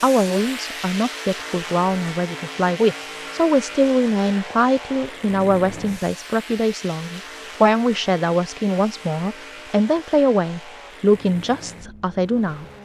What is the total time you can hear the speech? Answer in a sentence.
You can hear the speech for 13 seconds altogether.